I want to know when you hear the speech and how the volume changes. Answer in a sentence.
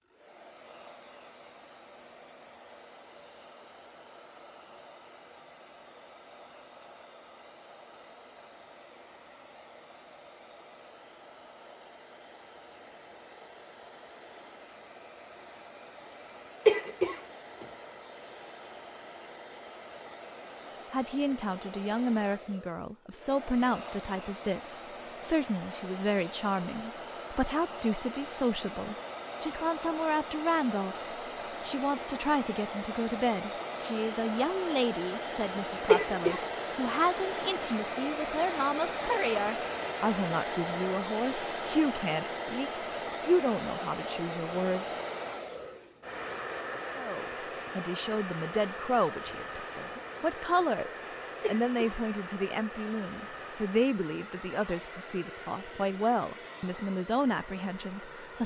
You can hear the speech from 20.9 to 31.1 s, at a steady volume; from 31.6 to 44.9 s, at a steady volume; and from 46.9 to 58.4 s, at a steady volume.